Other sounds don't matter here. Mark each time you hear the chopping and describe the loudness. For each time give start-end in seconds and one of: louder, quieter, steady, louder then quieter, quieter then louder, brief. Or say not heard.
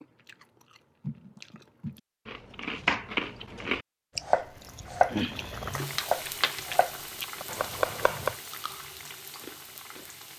2.6-8.3 louder then quieter.